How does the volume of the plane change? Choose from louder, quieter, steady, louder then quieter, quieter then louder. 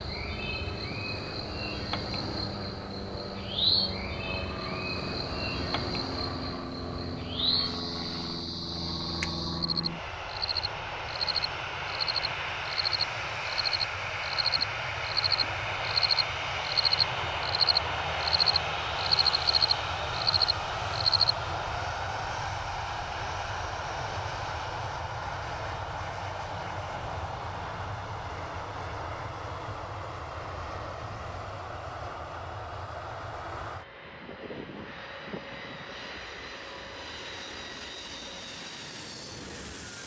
louder then quieter.